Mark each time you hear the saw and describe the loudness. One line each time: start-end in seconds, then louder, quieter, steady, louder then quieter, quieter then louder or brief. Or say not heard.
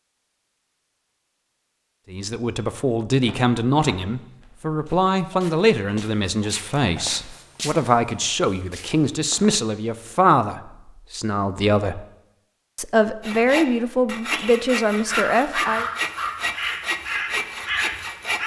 13.2-18.4 steady.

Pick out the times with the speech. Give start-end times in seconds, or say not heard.
2.1-12.1, 12.8-15.8.